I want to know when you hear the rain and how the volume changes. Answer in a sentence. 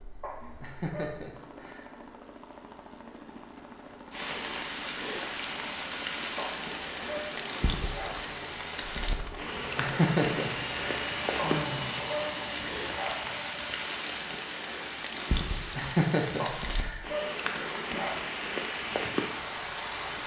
The rain can be heard from 4.1 to 20.2 s, at a steady volume.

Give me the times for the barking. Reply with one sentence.
The barking can be heard from 0.2 to 1.2 s, from 6.3 to 8.2 s, from 11.3 to 13.2 s and from 16.4 to 18.1 s.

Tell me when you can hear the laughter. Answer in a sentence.
The laughter can be heard from 0.6 to 1.9 s, from 9.8 to 11.9 s and from 15.8 to 17.1 s.